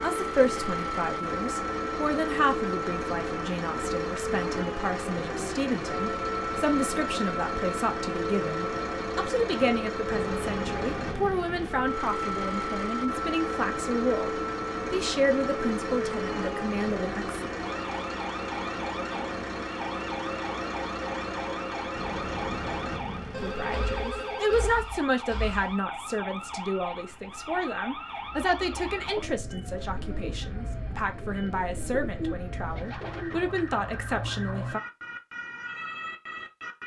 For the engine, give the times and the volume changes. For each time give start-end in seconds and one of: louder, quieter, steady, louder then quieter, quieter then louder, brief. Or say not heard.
0.0-25.8 steady.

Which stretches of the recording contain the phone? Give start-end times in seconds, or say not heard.
23.3-24.6.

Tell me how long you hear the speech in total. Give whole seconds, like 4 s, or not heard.
29 s.